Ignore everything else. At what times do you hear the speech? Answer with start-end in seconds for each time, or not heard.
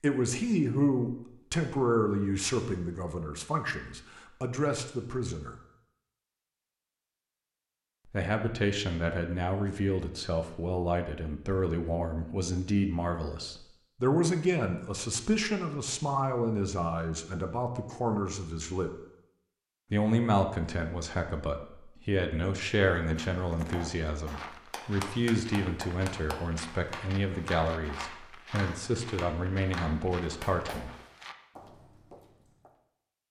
0.0-5.5, 8.1-18.9, 19.9-30.9.